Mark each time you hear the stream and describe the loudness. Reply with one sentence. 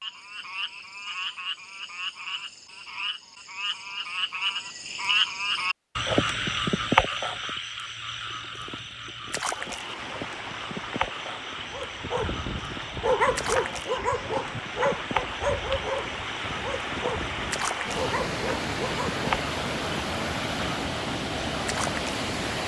The stream can be heard from 9.4 to 22.6 s, getting louder.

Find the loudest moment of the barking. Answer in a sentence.
The loudest moment of the barking is at 13 seconds.